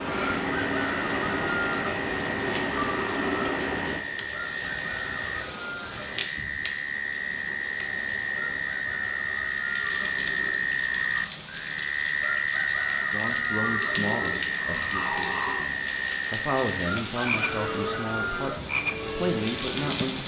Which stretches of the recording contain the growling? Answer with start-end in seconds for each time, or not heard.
2.9-3.6, 9.8-11.3, 13.6-15.7.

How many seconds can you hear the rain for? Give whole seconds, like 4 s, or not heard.
20 s.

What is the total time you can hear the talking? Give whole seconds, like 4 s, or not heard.
7 s.